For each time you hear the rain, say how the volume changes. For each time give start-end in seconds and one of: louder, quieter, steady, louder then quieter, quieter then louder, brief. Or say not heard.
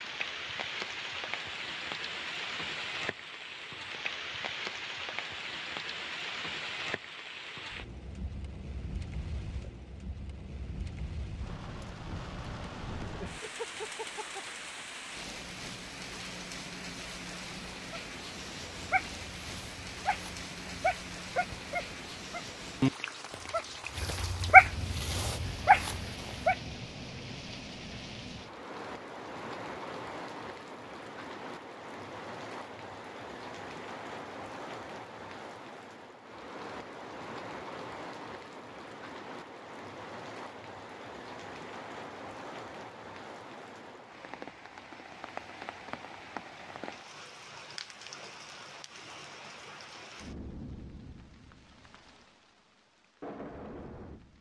0.0-54.3 quieter.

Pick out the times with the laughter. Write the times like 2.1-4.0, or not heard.
13.2-14.4.